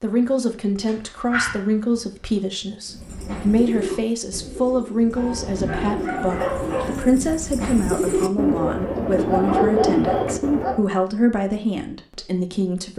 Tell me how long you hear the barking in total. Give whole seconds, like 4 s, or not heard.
5 s.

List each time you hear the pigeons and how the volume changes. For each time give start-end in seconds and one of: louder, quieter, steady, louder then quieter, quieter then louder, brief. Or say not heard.
2.9-10.8 louder.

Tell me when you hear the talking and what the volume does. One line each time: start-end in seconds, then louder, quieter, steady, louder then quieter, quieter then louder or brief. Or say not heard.
0.0-12.9 steady.